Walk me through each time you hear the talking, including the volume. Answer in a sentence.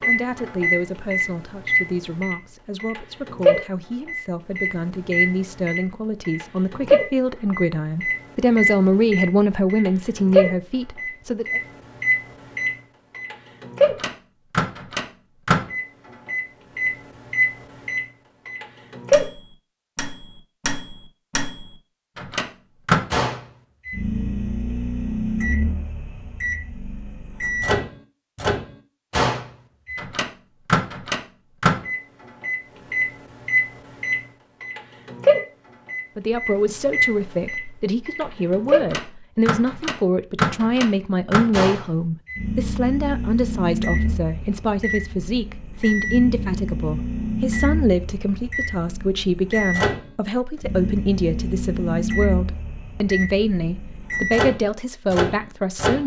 The talking can be heard from 0.0 to 11.6 s, getting louder; and from 36.1 to 56.0 s, at a steady volume.